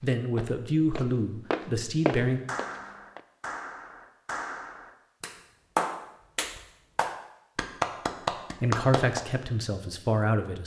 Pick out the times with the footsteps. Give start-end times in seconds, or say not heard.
0.0-3.2.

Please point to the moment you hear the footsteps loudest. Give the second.
2 s.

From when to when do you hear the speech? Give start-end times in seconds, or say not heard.
0.0-2.4, 8.6-10.6.